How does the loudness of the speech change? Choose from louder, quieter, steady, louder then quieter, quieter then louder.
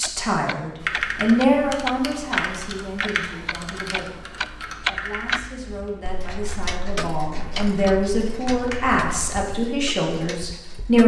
quieter then louder.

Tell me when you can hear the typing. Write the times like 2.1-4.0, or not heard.
0.8-9.4.